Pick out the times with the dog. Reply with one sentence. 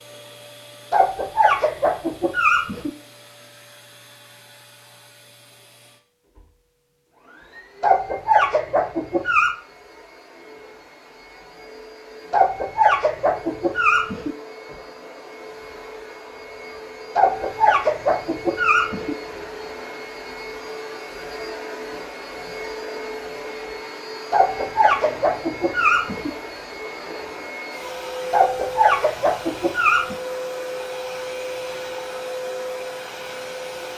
You can hear the dog from 0.9 to 2.9 s, from 7.8 to 9.6 s, from 12.3 to 14.3 s, from 17.1 to 19.1 s, from 24.3 to 26.3 s and from 28.3 to 30.1 s.